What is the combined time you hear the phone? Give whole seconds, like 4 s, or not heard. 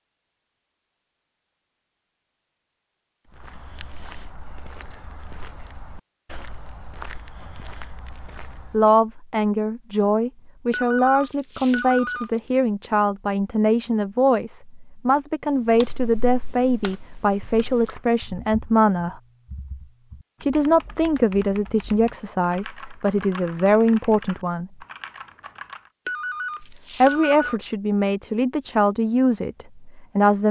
3 s.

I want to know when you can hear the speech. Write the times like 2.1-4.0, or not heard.
8.7-19.1, 20.4-24.9, 26.6-30.4.